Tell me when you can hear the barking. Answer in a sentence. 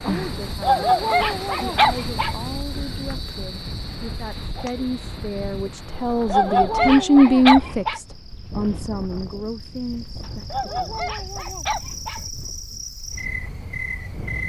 The barking can be heard from 0.6 to 2.4 s, from 6.2 to 8.0 s and from 10.5 to 12.2 s.